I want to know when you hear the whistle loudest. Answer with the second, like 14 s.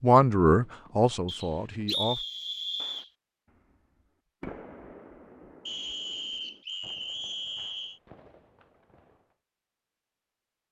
2 s.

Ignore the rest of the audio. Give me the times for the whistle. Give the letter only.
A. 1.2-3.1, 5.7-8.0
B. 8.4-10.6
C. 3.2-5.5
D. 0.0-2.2
A.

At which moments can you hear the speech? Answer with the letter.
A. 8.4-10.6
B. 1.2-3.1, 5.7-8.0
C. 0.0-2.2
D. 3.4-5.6
C.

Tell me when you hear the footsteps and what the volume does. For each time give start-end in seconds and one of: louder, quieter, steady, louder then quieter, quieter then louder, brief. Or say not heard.
not heard.